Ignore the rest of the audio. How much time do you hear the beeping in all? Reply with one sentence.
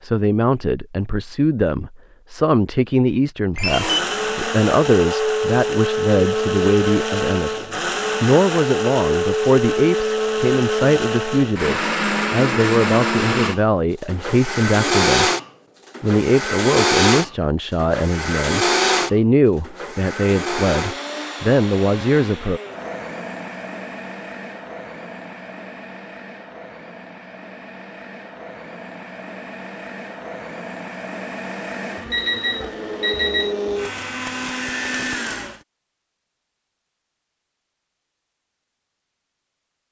You can hear the beeping for 2 seconds altogether.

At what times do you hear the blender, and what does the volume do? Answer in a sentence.
The blender can be heard from 3.6 to 35.6 s, getting quieter then louder.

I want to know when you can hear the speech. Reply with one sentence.
The speech can be heard from 0.0 to 15.3 s and from 16.0 to 22.6 s.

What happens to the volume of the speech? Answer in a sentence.
The volume of the speech stays about the same.